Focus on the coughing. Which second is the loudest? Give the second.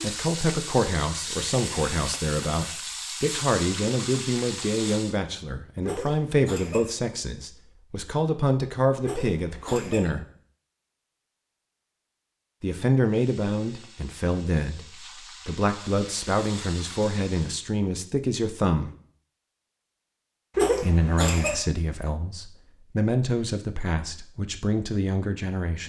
21 s.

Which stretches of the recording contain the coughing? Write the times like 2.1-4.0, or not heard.
5.8-6.8, 9.0-10.1, 20.6-21.6.